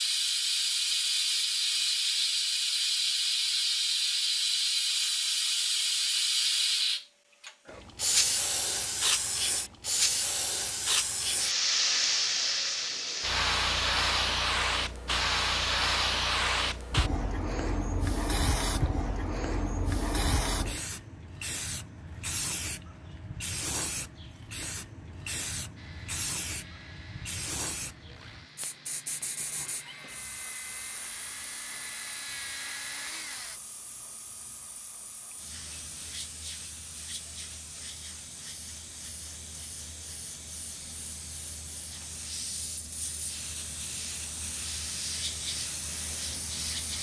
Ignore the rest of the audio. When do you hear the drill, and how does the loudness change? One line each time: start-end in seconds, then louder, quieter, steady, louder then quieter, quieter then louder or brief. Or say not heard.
25.8-33.6 louder.